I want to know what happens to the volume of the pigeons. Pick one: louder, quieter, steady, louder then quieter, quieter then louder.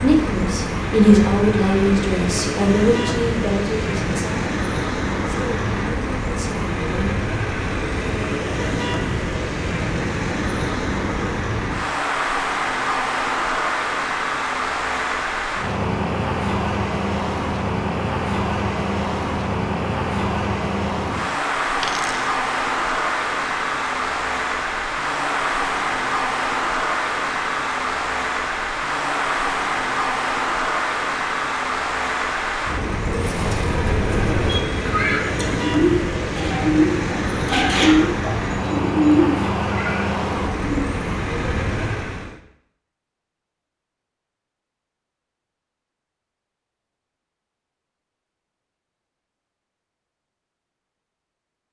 louder.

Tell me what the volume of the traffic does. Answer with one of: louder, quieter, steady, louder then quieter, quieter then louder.
steady.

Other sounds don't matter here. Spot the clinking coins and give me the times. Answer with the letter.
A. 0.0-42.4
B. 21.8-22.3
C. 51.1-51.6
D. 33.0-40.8
B.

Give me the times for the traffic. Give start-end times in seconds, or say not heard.
0.0-42.4.